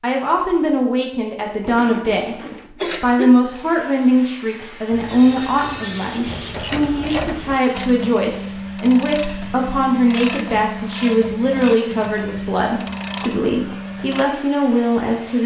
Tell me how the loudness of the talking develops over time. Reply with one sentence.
The loudness of the talking stays about the same.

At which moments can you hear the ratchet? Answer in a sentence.
You can hear the ratchet from 5.0 to 14.2 s.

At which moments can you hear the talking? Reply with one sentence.
The talking can be heard from 0.0 to 15.4 s.